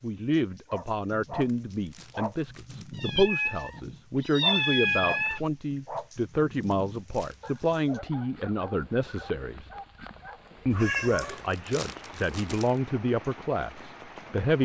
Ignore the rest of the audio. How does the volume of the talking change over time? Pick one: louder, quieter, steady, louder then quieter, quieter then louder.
steady.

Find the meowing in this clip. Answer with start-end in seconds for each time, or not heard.
3.0-5.4, 10.7-11.4.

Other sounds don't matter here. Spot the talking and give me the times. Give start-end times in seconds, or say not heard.
0.0-9.7, 10.7-14.5.